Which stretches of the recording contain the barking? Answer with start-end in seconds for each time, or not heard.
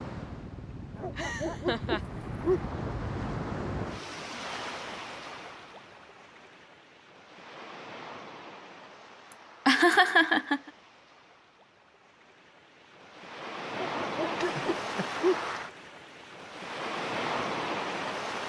0.9-2.6, 13.8-15.4.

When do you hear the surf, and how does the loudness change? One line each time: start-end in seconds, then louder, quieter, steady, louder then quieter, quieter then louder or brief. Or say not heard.
0.0-18.4 quieter then louder.